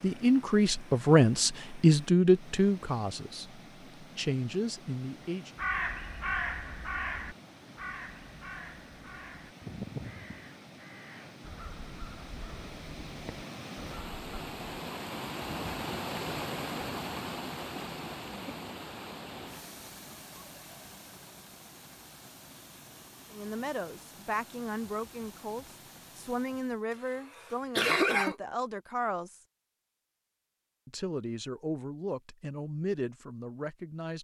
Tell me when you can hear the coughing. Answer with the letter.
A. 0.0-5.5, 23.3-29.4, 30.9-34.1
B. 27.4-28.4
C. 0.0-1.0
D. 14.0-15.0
B.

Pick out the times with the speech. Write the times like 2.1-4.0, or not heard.
0.0-5.5, 23.3-29.4, 30.9-34.1.